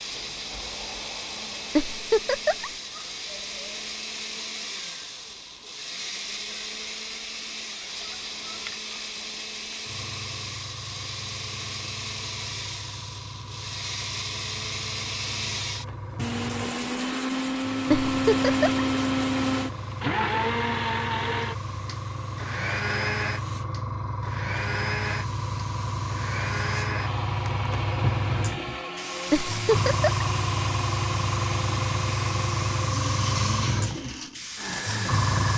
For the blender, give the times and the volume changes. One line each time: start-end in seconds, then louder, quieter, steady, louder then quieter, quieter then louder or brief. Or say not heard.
0.0-35.5 louder then quieter.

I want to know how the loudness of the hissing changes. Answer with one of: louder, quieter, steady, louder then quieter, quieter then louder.
louder.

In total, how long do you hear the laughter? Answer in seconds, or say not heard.
3 s.